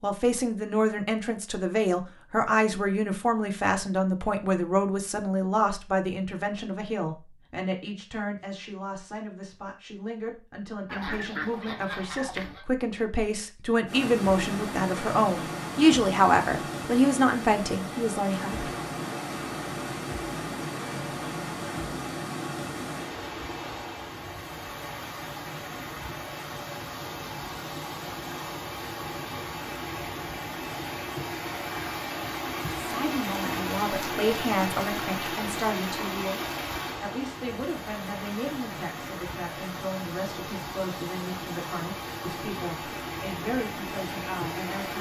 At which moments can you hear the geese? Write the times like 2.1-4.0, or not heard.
10.8-12.7.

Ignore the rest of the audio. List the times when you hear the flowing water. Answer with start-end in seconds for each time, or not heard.
13.8-44.9.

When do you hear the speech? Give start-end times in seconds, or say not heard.
0.0-18.7, 32.8-44.9.